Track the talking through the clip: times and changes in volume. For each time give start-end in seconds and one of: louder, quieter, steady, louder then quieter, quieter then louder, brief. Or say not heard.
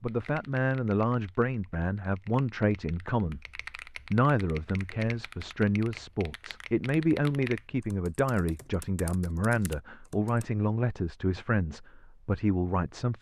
0.0-13.1 steady.